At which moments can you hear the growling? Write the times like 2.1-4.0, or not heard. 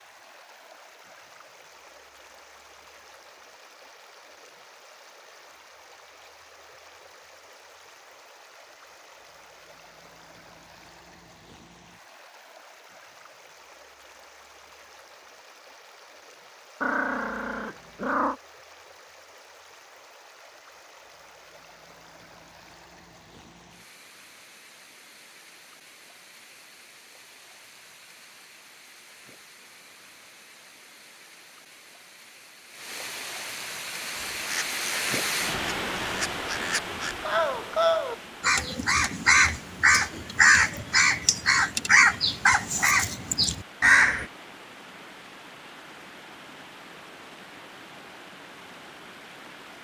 16.8-18.4.